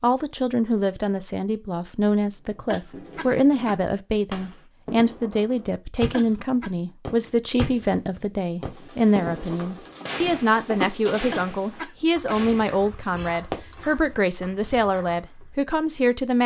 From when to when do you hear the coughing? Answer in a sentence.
The coughing can be heard from 2.6 to 3.8 s, from 6.1 to 6.7 s and from 11.3 to 12.4 s.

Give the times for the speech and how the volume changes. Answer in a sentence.
You can hear the speech from 0.0 to 16.4 s, at a steady volume.